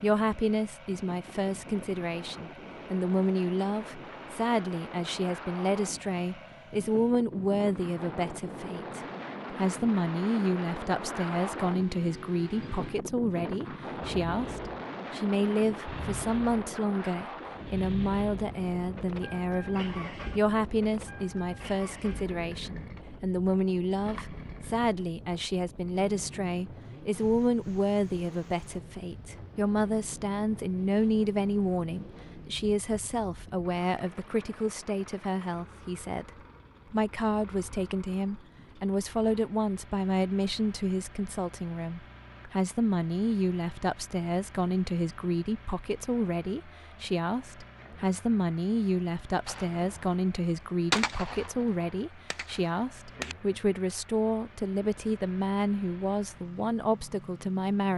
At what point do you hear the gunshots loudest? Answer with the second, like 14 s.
51 s.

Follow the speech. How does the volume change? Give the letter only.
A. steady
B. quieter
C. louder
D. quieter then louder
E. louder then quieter
A.